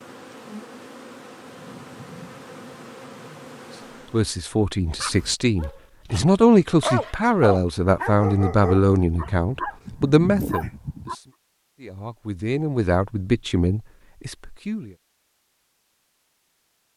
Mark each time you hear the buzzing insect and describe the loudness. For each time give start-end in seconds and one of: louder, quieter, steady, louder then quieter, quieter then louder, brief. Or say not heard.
0.0-4.4 steady.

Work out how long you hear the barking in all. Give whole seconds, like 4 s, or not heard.
6 s.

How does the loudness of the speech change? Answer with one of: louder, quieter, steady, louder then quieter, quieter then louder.
louder then quieter.